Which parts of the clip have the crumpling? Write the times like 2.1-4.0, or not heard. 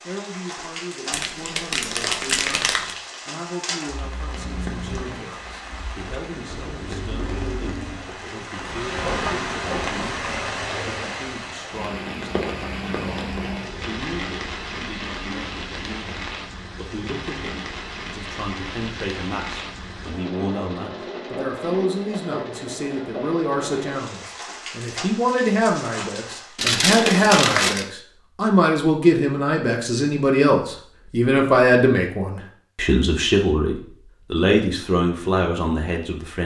1.1-3.0, 26.6-27.9.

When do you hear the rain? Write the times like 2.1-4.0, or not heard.
0.0-26.6.